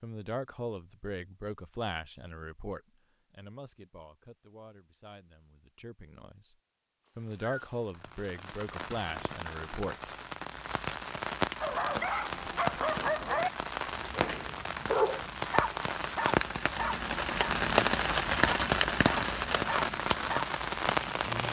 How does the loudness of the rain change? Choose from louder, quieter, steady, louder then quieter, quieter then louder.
louder.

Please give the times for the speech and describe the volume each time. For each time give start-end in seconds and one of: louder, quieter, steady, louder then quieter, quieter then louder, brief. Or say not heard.
0.0-6.5 quieter
7.2-10.1 brief.